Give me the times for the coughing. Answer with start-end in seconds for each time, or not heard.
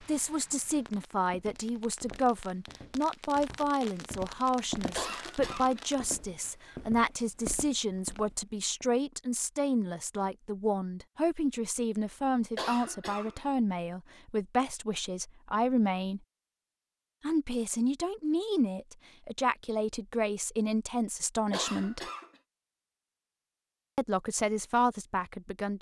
5.0-5.8, 12.6-13.5, 21.5-22.4.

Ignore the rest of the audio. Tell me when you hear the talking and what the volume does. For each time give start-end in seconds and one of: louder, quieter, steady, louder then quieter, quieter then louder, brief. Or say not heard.
0.1-16.2 steady
17.2-22.0 steady
23.9-25.7 brief.